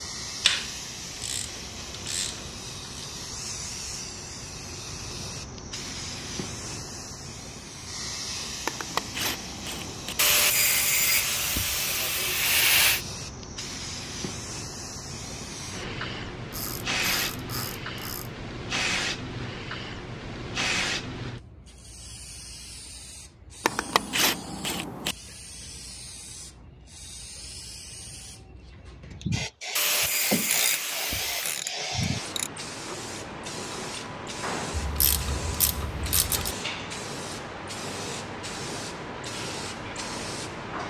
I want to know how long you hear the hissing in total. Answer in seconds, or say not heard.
41 s.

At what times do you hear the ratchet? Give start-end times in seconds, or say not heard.
0.4-3.0, 8.7-10.2, 16.5-18.4, 23.6-25.1, 29.9-32.5, 34.8-36.5.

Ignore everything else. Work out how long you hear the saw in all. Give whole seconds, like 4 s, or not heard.
5 s.